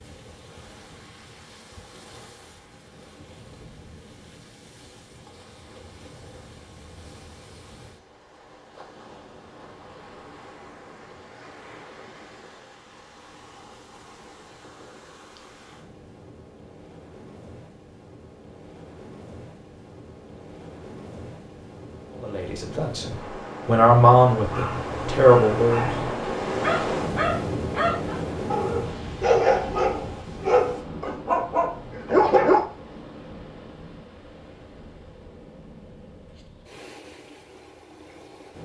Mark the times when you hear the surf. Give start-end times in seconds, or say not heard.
0.0-38.5.